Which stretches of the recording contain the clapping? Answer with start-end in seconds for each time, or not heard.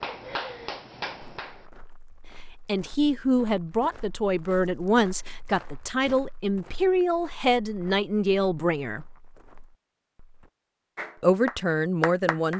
0.0-1.6, 10.9-12.5.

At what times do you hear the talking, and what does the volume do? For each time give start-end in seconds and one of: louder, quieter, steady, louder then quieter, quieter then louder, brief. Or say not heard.
2.5-9.1 steady
11.2-12.5 brief.